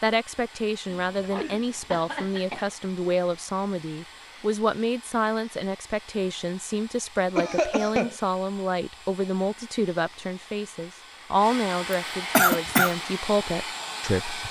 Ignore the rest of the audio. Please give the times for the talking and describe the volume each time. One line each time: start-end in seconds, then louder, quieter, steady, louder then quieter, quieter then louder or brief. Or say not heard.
0.0-14.4 steady.